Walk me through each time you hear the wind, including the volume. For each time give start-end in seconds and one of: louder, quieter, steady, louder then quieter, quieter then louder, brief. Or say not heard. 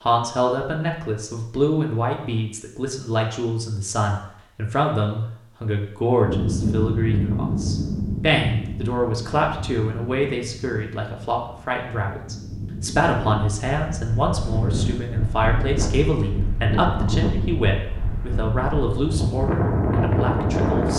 6.2-20.9 quieter then louder.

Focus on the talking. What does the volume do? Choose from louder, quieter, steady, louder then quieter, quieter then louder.
steady.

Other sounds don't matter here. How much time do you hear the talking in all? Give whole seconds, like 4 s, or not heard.
21 s.